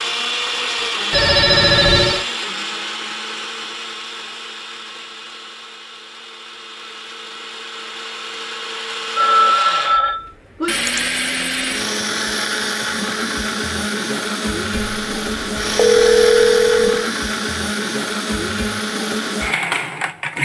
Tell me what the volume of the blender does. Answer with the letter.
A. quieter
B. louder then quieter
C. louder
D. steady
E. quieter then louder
E.